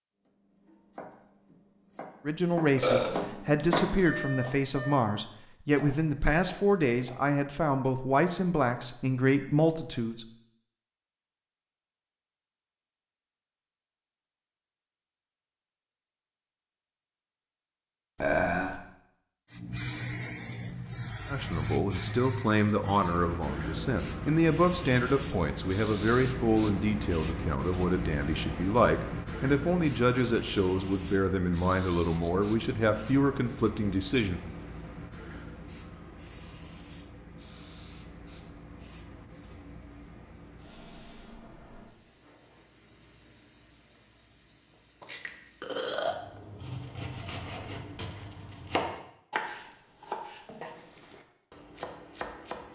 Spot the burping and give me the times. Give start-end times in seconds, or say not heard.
2.8-3.7, 18.2-18.8, 45.0-46.1.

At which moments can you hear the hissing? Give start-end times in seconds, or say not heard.
19.5-46.4.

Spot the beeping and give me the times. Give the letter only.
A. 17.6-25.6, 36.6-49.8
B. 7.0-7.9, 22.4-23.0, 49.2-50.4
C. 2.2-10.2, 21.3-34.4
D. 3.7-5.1
D.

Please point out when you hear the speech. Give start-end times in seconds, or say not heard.
2.2-10.2, 21.3-34.4.